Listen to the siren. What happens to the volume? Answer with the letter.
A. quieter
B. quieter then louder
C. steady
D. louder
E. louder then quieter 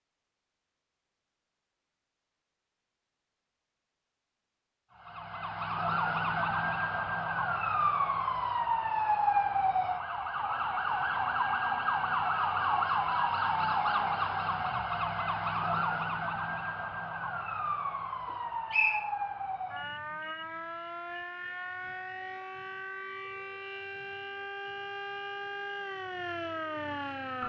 A.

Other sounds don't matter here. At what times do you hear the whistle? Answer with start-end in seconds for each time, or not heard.
18.7-19.1.